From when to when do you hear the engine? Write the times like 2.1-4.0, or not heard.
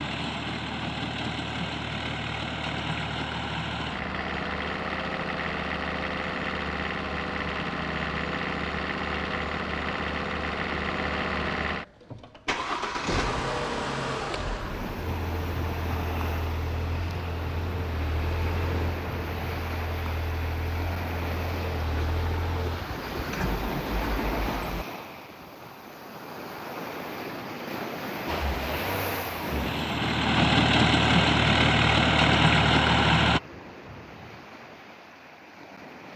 0.0-24.9, 28.2-33.4.